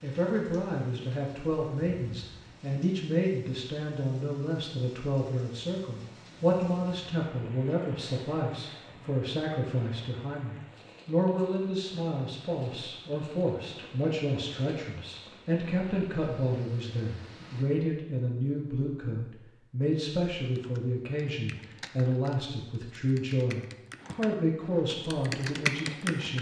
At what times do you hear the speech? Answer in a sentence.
You can hear the speech from 0.0 to 26.3 s.